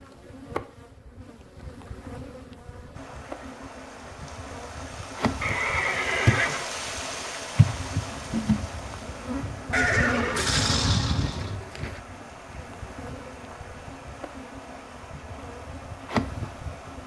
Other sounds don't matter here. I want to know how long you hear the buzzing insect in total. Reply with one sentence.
You can hear the buzzing insect for 17 seconds altogether.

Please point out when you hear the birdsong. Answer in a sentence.
The birdsong can't be heard in this clip.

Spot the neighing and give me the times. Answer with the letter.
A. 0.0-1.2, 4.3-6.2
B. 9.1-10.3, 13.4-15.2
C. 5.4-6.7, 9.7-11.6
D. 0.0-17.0
C.